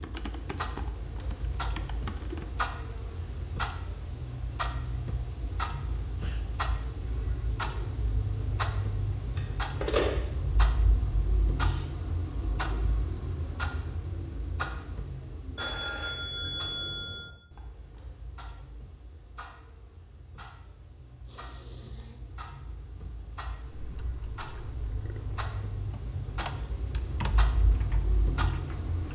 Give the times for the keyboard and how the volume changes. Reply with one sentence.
The keyboard can be heard briefly from 0.0 to 2.6 s; and from 23.6 to 29.0 s, getting louder then quieter.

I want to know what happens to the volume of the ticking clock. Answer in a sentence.
The volume of the ticking clock goes down, then up.